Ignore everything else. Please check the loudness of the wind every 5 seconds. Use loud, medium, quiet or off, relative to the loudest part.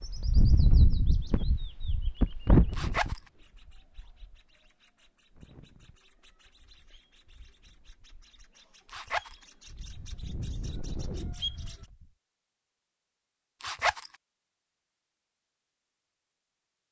loud, quiet, quiet, off.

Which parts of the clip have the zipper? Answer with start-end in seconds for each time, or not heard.
2.7-3.2, 8.8-9.4, 13.6-14.2.